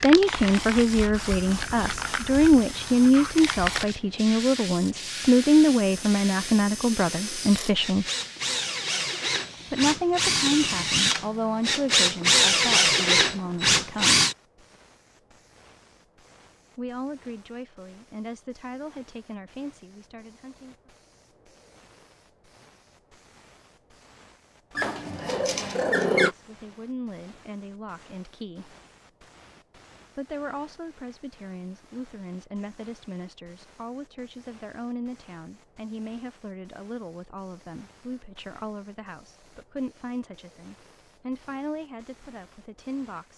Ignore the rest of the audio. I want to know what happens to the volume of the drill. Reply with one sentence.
The loudness of the drill goes up.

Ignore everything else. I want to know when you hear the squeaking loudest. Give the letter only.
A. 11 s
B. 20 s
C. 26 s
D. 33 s
C.